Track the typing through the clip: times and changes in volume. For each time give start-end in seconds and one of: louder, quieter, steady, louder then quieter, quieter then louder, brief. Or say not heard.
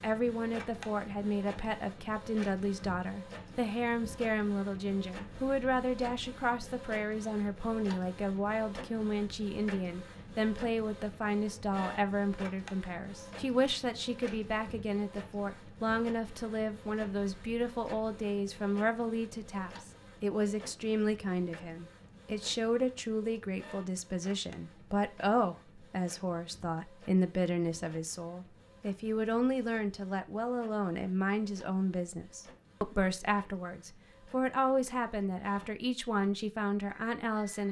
not heard.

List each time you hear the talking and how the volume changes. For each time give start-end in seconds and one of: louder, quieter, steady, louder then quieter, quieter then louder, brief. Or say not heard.
0.0-37.6 steady.